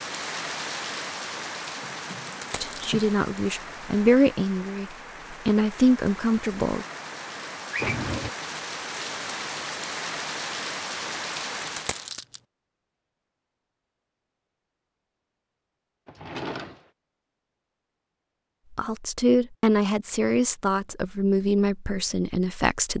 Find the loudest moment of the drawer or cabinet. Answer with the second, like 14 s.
8 s.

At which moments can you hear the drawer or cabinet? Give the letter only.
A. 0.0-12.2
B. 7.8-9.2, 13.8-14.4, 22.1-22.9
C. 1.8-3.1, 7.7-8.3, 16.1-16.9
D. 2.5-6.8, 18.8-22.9
C.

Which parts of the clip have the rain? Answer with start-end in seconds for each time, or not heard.
0.0-12.2.